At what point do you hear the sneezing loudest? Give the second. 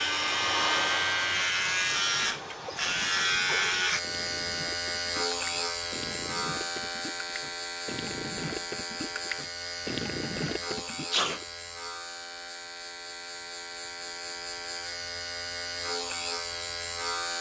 11 s.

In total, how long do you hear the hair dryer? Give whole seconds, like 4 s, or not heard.
3 s.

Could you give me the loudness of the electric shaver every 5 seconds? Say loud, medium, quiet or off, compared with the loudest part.
loud, medium, medium, medium.